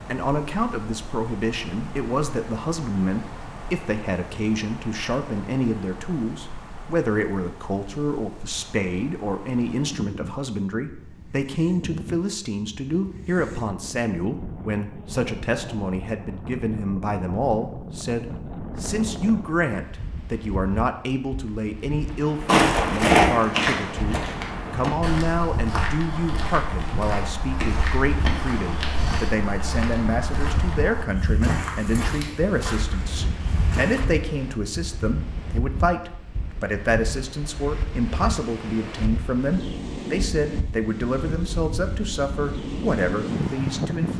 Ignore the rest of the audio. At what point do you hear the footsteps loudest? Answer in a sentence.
The volume of the footsteps peaks at 23 seconds.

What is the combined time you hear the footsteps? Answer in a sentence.
You can hear the footsteps for 12 seconds altogether.